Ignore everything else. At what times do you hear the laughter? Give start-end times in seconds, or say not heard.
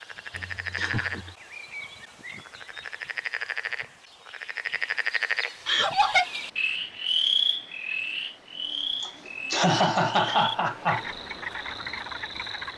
0.3-1.4, 5.7-6.2, 9.0-11.1.